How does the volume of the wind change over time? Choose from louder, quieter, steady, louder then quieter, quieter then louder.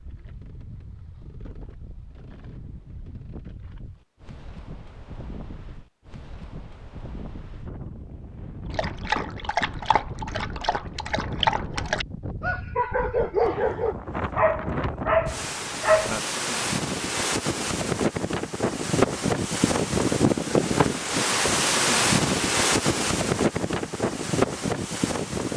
louder.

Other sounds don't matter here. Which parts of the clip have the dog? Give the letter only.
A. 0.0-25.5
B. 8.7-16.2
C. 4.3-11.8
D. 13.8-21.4
B.